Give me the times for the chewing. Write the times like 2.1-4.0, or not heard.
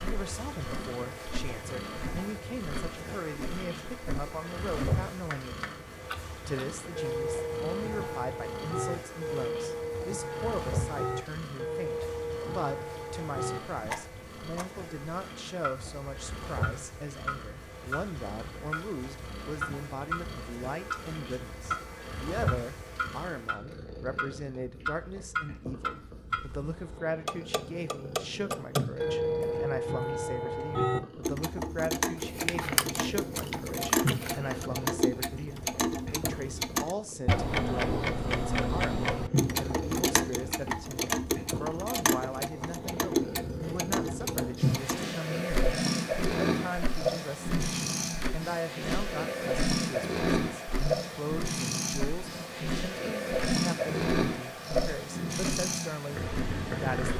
32.1-34.5.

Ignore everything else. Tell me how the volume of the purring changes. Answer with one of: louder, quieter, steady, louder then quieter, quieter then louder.
louder.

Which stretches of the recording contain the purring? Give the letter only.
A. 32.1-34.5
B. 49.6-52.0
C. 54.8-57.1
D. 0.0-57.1
D.